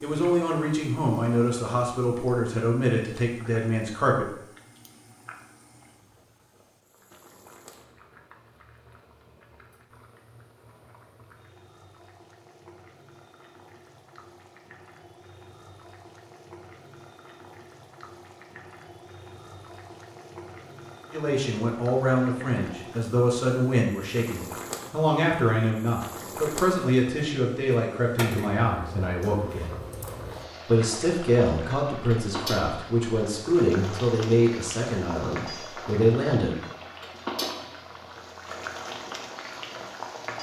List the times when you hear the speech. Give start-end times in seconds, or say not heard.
0.0-4.2, 21.1-29.7, 30.6-36.5.